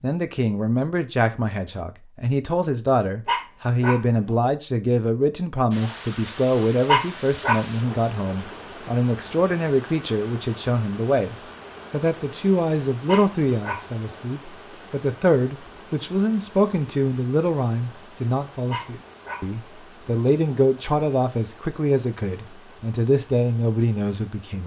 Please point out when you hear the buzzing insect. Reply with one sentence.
You can't hear the buzzing insect here.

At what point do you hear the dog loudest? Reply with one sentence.
The volume of the dog peaks at 7 seconds.